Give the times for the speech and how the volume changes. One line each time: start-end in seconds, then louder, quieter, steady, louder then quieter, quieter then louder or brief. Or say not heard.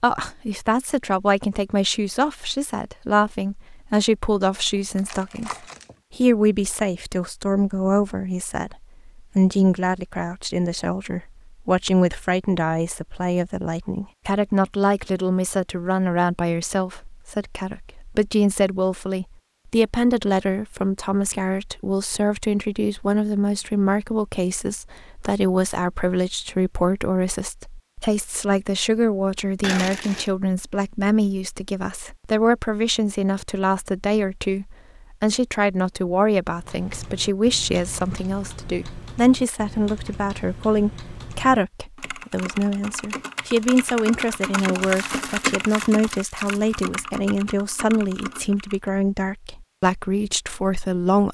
0.0-51.2 steady.